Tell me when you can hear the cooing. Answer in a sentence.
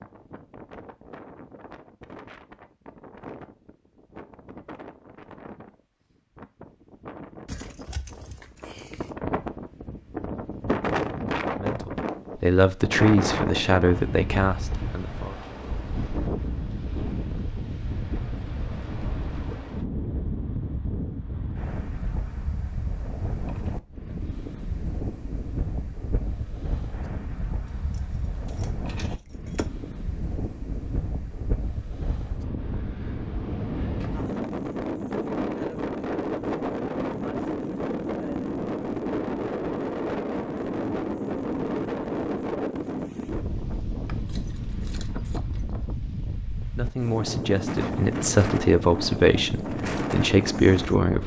The cooing can't be heard in this clip.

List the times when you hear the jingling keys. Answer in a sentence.
You can hear the jingling keys from 7.5 to 9.2 s, from 27.6 to 29.6 s and from 44.0 to 45.9 s.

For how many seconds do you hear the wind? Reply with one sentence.
You can hear the wind for 51 seconds altogether.